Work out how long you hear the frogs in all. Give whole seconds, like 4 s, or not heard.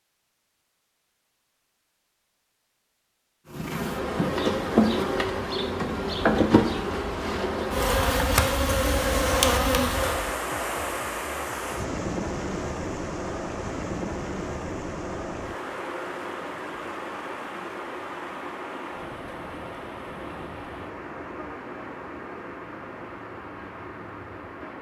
not heard.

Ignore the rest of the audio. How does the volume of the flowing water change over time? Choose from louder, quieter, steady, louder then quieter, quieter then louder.
quieter.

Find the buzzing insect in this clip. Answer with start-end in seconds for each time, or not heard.
3.5-10.3.